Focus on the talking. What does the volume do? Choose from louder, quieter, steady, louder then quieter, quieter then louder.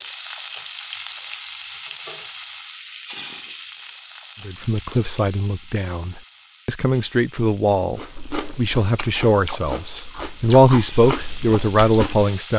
louder.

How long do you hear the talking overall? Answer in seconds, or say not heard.
8 s.